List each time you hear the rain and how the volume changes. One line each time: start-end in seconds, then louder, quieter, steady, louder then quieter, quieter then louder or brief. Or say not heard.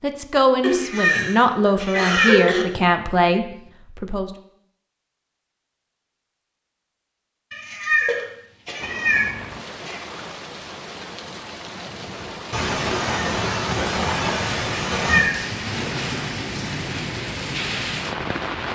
8.8-18.7 louder.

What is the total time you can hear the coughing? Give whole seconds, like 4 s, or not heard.
6 s.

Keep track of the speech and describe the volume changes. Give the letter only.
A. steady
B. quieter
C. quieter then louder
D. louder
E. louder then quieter
A.